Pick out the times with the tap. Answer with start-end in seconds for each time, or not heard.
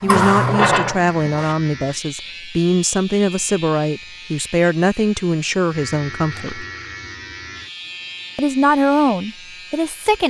0.1-1.6.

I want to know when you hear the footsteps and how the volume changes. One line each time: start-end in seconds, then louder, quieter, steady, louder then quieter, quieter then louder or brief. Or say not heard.
not heard.